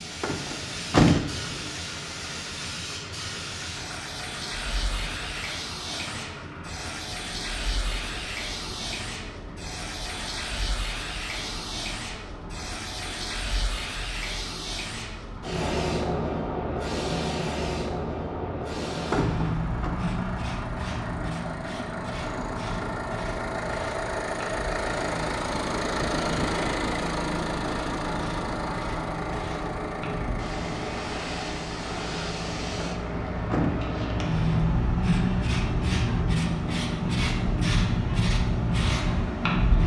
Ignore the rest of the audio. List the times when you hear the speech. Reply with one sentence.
You can't hear the speech here.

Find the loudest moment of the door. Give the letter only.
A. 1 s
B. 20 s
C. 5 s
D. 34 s
A.